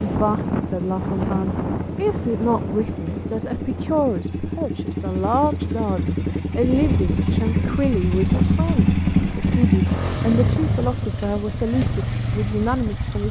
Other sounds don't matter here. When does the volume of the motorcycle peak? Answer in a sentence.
The loudest moment of the motorcycle is at 9 seconds.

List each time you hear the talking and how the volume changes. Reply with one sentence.
The talking can be heard from 0.0 to 13.2 s, at a steady volume.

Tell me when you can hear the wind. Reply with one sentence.
You can hear the wind from 0.0 to 9.6 s.